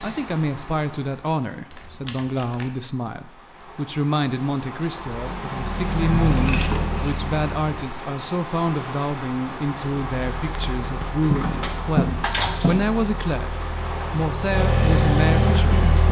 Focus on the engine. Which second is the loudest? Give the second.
15 s.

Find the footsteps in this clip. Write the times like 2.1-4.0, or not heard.
not heard.